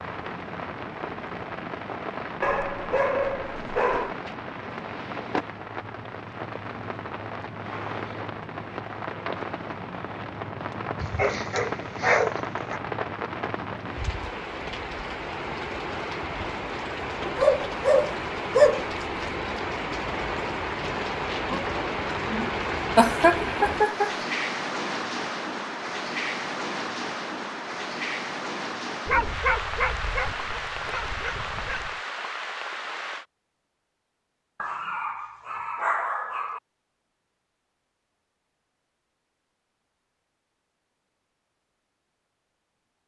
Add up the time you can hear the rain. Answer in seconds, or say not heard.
33 s.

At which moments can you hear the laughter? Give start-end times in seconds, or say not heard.
22.9-24.1.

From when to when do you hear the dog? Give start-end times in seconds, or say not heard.
2.4-4.2, 11.0-12.8, 17.4-19.3, 29.1-31.9, 34.5-36.6.